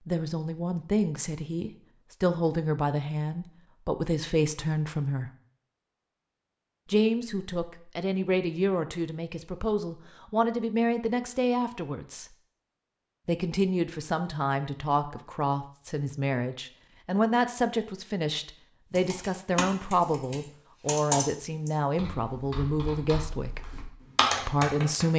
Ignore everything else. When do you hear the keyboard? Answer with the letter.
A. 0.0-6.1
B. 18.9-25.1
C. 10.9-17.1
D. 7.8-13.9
B.